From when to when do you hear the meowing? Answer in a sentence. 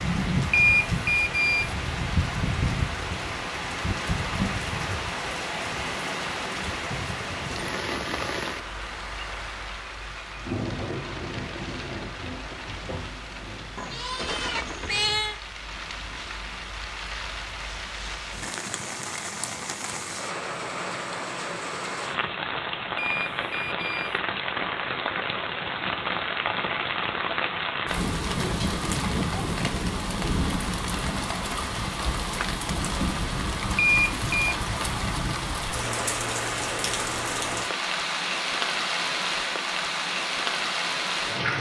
You can hear the meowing from 13.8 to 15.3 s and from 28.3 to 29.7 s.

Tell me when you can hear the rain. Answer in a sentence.
You can hear the rain from 0.0 to 41.5 s.